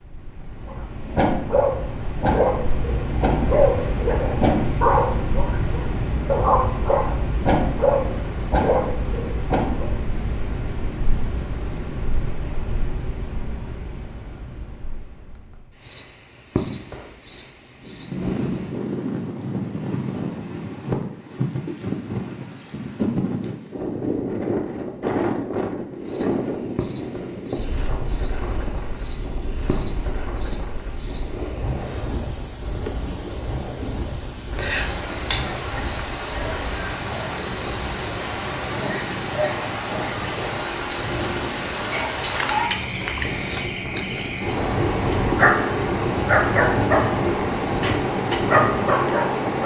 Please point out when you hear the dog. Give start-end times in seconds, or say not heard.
0.7-9.9, 45.2-49.6.